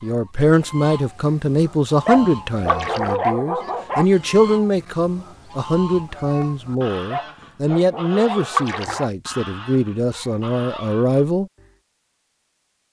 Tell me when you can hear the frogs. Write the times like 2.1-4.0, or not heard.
not heard.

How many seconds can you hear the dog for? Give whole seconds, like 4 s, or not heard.
4 s.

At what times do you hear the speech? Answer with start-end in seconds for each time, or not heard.
0.0-11.5.